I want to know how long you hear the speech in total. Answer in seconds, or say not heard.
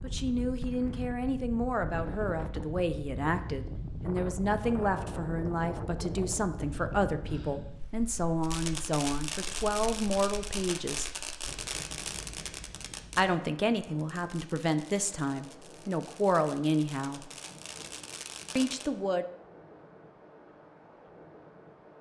16 s.